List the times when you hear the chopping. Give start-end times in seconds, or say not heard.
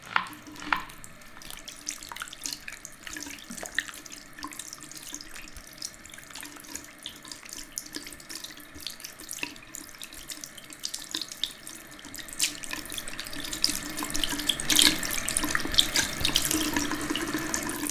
0.0-1.5.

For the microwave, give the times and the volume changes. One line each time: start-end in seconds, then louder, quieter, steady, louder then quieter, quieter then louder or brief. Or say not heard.
not heard.